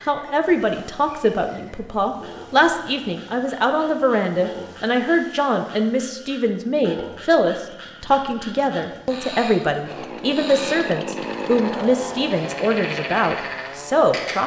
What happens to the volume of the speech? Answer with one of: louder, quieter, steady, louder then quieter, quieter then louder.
steady.